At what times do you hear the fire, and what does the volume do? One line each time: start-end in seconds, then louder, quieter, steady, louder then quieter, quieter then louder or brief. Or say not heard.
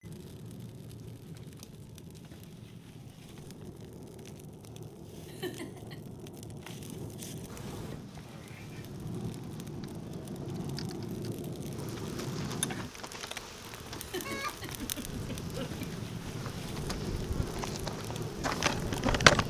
0.0-19.4 louder.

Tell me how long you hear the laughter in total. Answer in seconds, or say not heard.
3 s.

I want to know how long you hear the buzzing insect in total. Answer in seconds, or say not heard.
12 s.